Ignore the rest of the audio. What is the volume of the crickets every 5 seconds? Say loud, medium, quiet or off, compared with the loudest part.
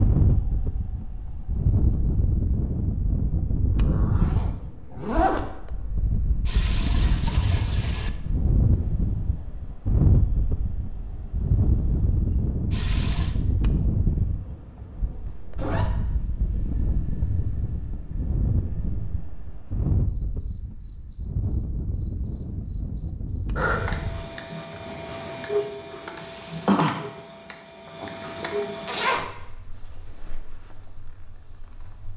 quiet, quiet, quiet, quiet, loud, loud, quiet.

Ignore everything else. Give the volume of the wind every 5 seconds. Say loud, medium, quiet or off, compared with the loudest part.
loud, loud, loud, medium, medium, off, off.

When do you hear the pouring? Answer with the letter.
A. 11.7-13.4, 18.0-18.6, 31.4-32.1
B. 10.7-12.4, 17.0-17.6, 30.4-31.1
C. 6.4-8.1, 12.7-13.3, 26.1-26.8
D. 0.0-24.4
C.